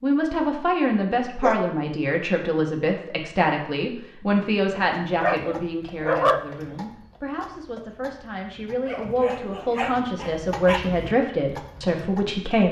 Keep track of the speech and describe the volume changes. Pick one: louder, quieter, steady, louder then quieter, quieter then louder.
quieter then louder.